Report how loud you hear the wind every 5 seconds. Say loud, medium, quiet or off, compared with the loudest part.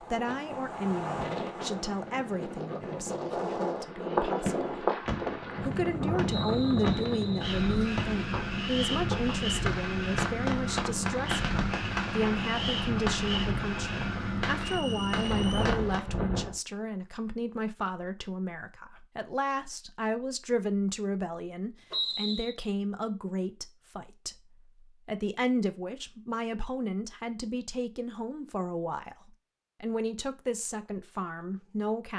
loud, loud, loud, loud, off, off, off.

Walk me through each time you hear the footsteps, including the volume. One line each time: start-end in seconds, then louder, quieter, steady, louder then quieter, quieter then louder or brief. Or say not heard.
not heard.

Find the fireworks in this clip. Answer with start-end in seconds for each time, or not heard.
4.5-16.1.